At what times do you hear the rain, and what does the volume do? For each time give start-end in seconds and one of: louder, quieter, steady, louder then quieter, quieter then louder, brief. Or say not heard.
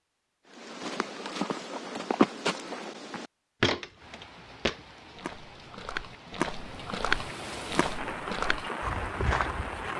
4.0-9.9 louder.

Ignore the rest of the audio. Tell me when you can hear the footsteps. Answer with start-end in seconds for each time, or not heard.
0.5-9.8.